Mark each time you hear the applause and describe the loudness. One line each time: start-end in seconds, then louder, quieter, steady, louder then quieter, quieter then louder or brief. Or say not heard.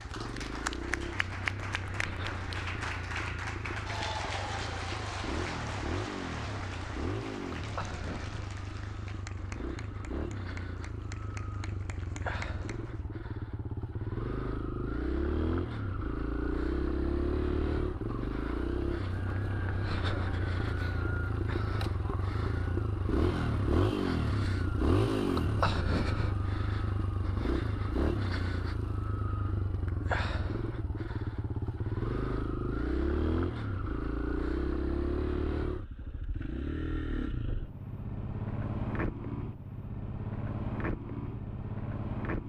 0.0-13.1 quieter.